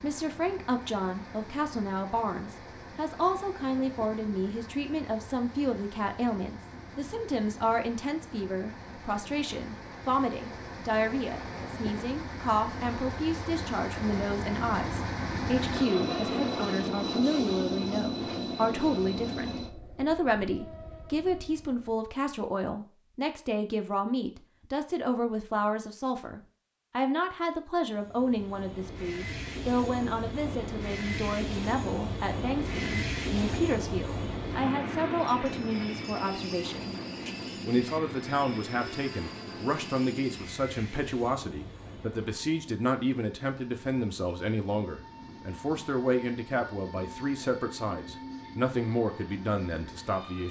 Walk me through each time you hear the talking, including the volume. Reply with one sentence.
You can hear the talking from 0.0 to 50.4 s, at a steady volume.